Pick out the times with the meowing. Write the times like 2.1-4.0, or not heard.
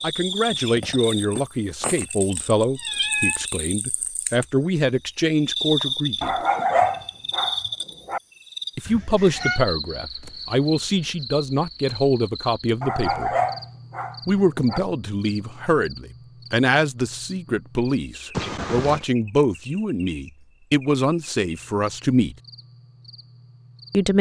2.8-3.5, 8.8-9.6, 18.4-19.1.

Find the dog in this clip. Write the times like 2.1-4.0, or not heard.
6.2-8.2, 12.8-14.8.